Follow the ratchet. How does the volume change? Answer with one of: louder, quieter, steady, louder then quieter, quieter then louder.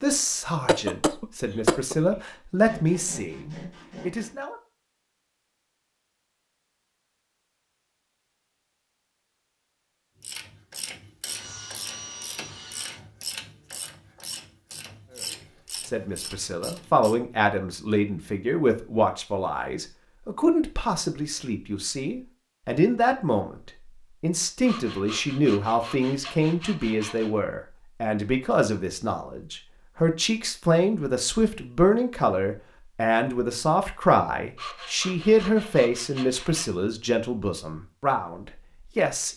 steady.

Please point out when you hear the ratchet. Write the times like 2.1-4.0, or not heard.
10.2-17.1.